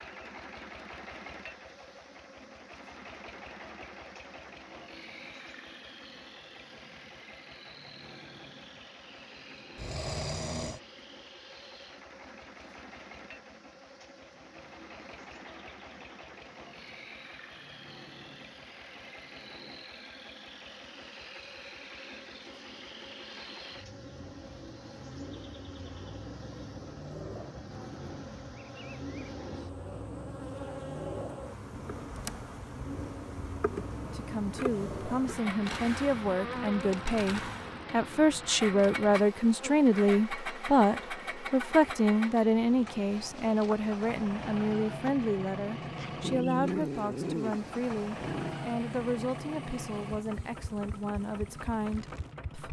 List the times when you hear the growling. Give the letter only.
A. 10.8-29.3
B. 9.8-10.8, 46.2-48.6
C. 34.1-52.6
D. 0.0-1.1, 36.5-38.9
B.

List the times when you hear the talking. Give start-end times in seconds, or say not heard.
34.1-52.6.